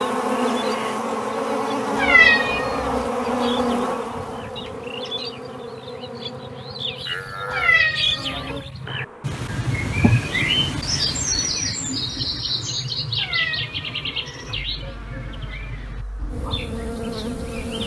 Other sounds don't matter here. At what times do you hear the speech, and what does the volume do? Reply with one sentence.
The speech can't be heard in this clip.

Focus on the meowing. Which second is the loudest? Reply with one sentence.
The loudest moment of the meowing is at 2 seconds.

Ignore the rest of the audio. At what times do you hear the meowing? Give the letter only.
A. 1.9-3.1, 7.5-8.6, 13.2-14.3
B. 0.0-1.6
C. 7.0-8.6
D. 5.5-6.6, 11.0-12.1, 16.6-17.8
A.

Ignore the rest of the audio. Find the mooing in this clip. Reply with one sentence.
The mooing can be heard from 7.0 to 8.6 s.